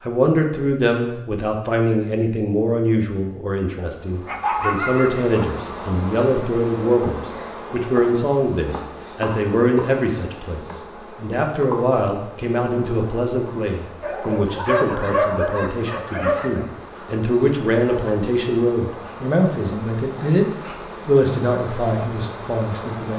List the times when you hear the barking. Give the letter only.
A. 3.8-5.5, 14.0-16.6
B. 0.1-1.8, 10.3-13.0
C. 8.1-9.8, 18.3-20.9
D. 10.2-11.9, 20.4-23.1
A.